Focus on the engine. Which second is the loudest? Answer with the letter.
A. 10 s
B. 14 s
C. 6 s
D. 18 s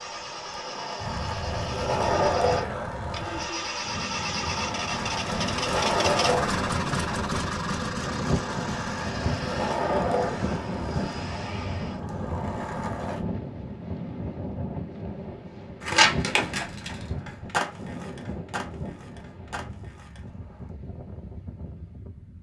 C.